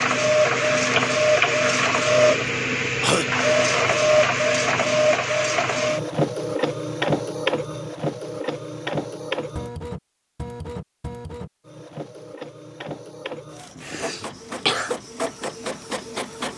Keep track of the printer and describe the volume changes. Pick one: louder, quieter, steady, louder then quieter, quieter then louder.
quieter.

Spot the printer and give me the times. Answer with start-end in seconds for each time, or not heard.
0.0-16.5.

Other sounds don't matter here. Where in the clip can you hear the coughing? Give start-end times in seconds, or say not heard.
2.1-3.2, 13.8-14.9.